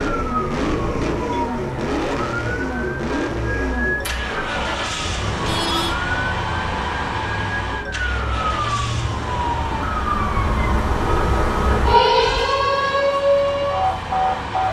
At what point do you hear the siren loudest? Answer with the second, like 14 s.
12 s.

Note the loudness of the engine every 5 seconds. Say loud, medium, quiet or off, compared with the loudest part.
loud, loud, medium.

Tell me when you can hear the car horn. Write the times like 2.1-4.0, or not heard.
0.5-1.4, 5.3-6.0, 10.4-12.4.